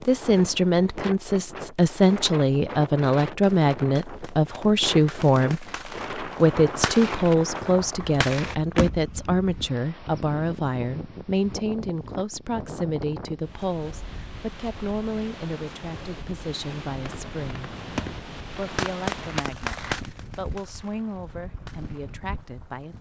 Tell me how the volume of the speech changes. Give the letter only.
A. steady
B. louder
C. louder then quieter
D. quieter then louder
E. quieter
E.